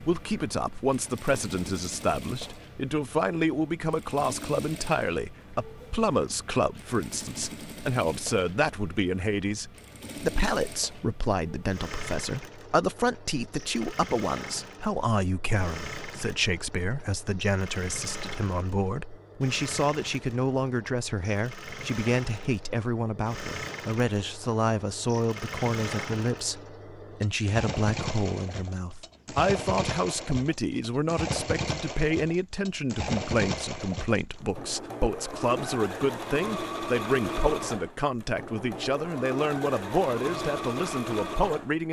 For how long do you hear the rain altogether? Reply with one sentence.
You can't hear the rain here.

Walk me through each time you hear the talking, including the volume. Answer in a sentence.
You can hear the talking from 0.0 to 41.8 s, at a steady volume.